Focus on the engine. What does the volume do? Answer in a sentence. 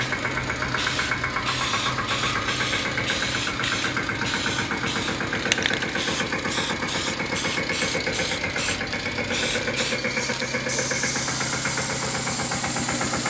The loudness of the engine stays about the same.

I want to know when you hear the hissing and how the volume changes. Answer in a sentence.
You can hear the hissing from 0.0 to 13.2 s, at a steady volume.